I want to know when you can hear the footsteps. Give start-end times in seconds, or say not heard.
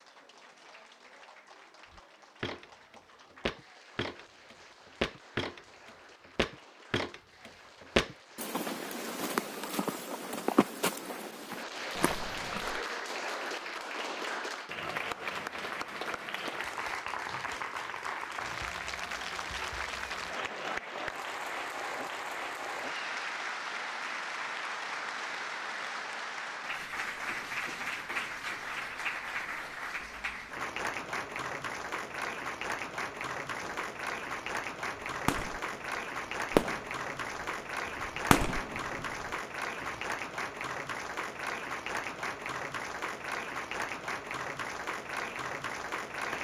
1.9-12.8.